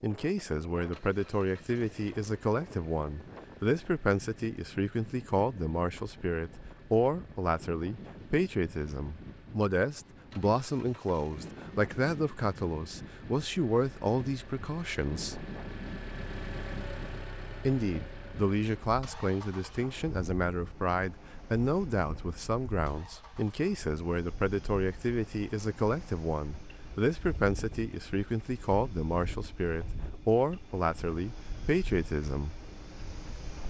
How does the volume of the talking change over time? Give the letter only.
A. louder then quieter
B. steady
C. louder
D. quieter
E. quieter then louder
B.